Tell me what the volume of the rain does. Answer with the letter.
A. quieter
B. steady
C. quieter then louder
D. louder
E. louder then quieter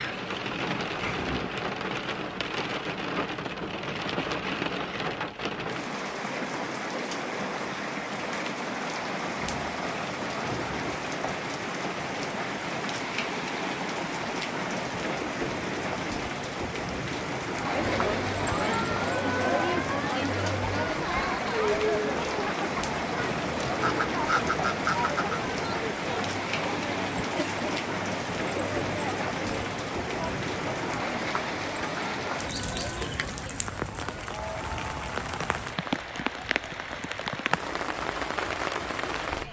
B.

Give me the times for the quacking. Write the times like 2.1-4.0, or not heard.
23.8-25.4.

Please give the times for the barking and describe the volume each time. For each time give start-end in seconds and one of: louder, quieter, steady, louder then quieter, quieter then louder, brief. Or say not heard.
not heard.